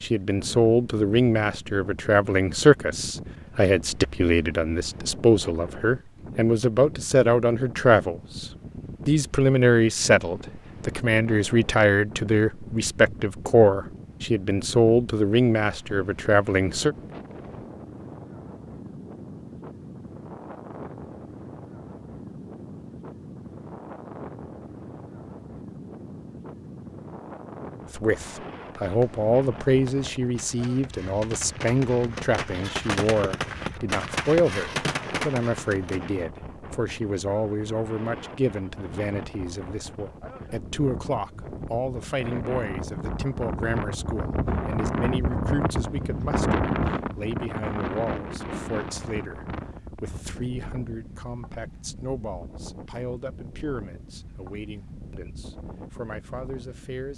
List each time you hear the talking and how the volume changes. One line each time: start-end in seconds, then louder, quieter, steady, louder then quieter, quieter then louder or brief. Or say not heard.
0.0-16.9 steady
27.9-57.1 quieter.